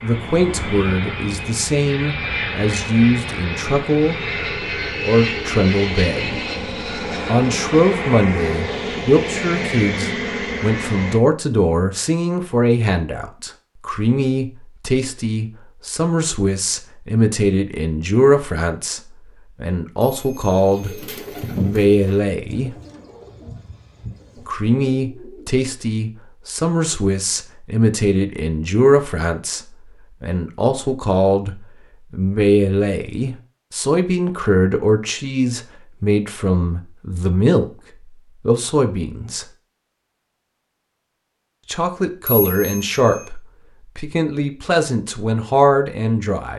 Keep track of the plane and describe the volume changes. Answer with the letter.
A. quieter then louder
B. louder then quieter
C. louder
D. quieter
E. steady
E.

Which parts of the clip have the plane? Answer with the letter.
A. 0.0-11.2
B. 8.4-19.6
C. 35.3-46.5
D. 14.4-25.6
A.